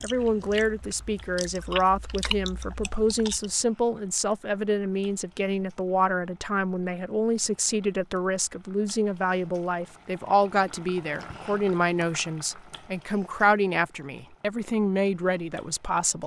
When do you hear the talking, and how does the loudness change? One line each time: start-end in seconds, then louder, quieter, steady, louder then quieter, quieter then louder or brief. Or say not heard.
0.0-16.2 steady.